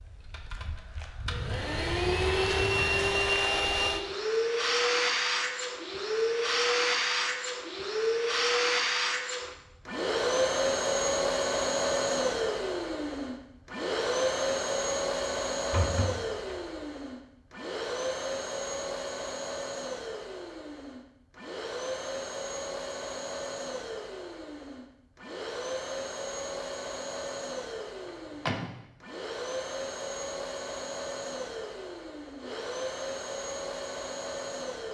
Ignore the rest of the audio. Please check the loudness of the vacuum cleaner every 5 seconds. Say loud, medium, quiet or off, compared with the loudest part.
loud, loud, loud, medium, medium, medium, medium.